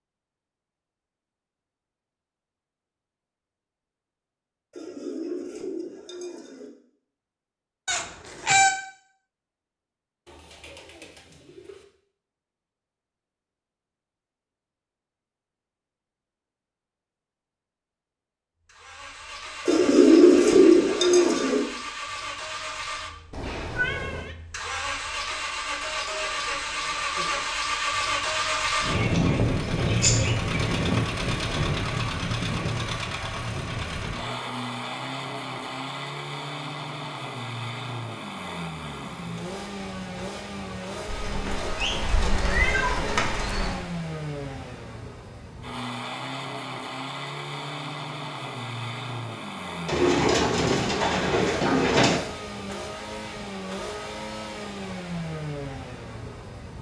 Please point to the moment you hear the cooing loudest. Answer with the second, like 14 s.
20 s.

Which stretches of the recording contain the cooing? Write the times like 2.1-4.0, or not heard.
4.7-6.7, 10.2-11.8, 19.6-21.6, 28.9-30.9, 41.0-43.9, 49.9-52.2.